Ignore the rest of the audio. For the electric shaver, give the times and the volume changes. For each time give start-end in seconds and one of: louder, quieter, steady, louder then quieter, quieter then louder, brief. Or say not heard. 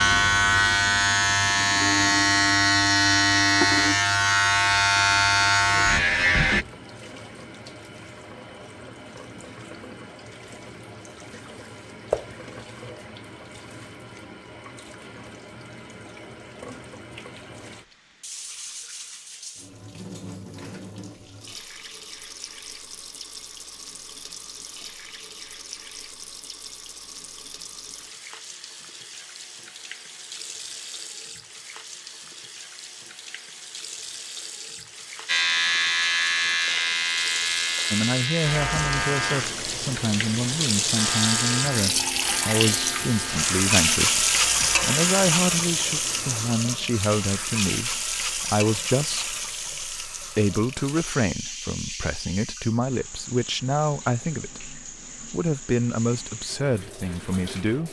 0.0-6.7 steady
35.2-46.5 quieter.